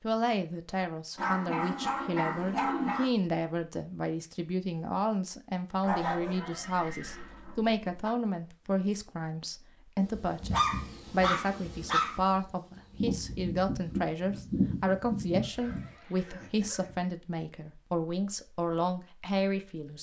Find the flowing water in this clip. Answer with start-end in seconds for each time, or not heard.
not heard.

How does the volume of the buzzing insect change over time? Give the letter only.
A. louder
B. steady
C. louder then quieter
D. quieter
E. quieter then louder
E.